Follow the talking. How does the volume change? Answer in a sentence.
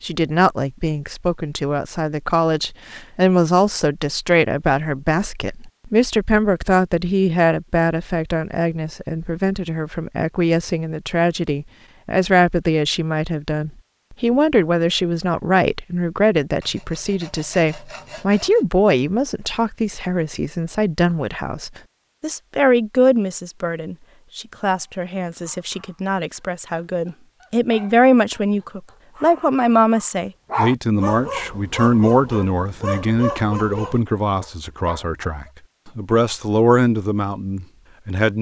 The loudness of the talking stays about the same.